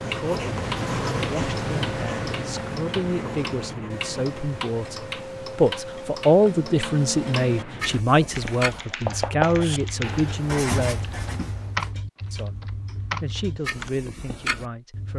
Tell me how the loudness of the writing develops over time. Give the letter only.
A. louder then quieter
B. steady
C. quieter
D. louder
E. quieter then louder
E.